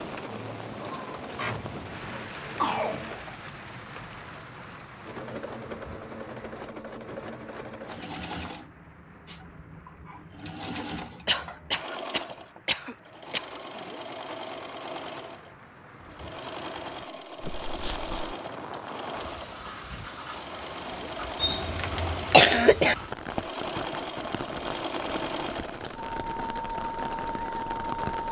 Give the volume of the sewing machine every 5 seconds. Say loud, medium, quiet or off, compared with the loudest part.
medium, medium, medium, medium, loud, loud.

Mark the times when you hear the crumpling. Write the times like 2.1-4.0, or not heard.
17.4-18.4.